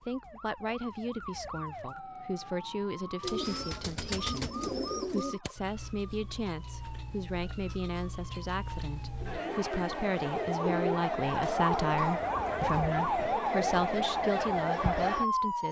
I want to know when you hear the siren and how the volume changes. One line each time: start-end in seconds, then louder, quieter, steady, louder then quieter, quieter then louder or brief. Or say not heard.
0.0-15.6 louder.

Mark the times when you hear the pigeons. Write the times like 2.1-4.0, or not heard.
3.2-5.4, 9.2-12.1.